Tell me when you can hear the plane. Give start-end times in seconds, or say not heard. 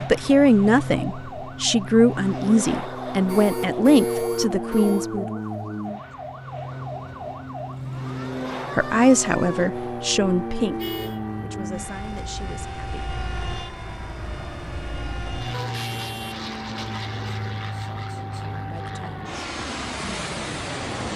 0.0-21.1.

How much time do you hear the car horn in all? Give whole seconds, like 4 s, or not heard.
3 s.